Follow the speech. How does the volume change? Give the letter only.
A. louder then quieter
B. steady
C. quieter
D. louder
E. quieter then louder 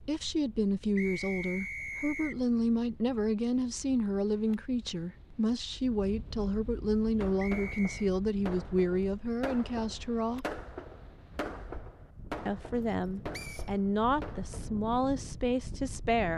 B.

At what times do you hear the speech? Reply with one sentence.
You can hear the speech from 0.0 to 10.6 s and from 12.4 to 16.3 s.